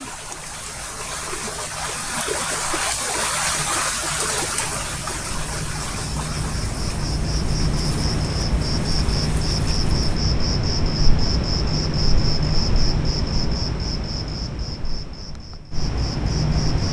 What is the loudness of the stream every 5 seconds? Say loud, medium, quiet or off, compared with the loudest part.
loud, medium, off, off.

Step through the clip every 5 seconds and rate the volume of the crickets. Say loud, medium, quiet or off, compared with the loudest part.
quiet, loud, loud, loud.